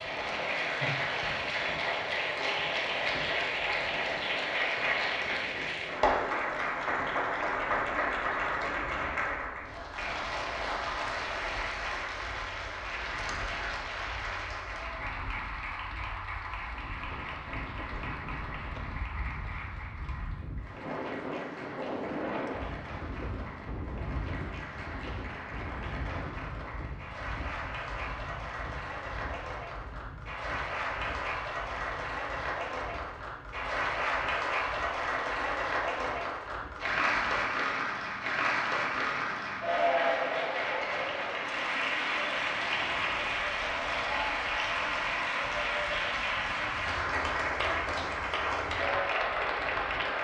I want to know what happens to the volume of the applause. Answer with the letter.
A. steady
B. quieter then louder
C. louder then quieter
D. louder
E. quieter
B.